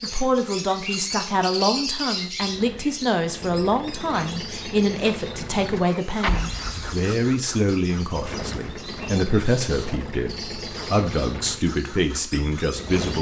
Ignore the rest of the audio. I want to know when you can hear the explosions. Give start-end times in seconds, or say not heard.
6.2-7.0.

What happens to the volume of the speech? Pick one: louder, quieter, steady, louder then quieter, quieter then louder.
steady.